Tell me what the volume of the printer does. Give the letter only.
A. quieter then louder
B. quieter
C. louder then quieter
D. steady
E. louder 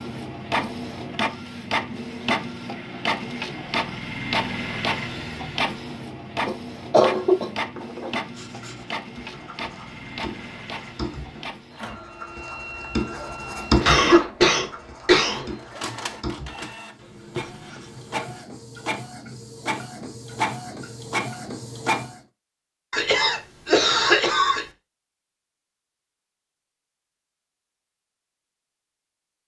A.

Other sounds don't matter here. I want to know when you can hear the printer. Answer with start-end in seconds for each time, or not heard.
0.0-22.2.